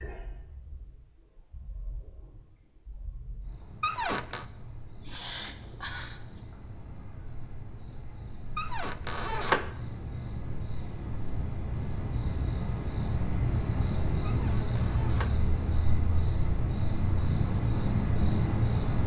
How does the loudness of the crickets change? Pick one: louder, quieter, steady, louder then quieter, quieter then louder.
louder.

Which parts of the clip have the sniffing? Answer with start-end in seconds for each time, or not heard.
5.0-6.4.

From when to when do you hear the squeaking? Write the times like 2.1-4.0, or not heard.
3.8-4.5, 8.6-9.7, 14.2-15.3.